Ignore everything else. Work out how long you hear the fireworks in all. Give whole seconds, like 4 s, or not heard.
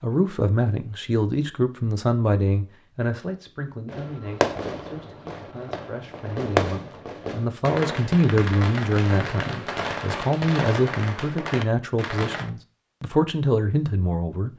9 s.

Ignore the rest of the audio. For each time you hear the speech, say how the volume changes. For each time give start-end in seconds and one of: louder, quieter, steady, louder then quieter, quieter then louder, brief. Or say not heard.
0.0-14.5 quieter then louder.